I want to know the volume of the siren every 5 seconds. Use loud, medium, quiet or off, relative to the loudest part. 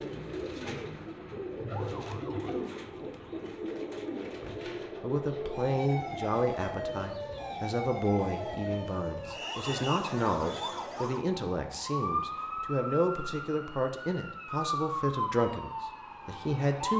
medium, loud, loud, loud.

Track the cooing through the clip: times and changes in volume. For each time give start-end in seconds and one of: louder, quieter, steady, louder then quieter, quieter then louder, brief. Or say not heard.
0.0-8.8 quieter.